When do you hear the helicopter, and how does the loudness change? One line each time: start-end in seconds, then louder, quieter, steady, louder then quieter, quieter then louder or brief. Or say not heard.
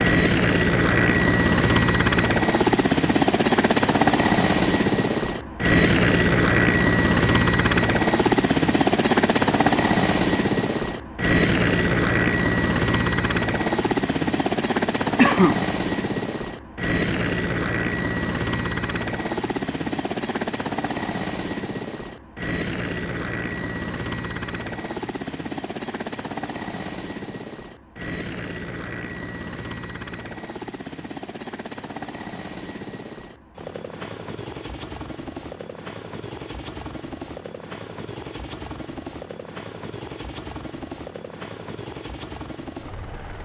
0.0-43.4 quieter.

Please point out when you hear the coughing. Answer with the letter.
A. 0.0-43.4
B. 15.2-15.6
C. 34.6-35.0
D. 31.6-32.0
B.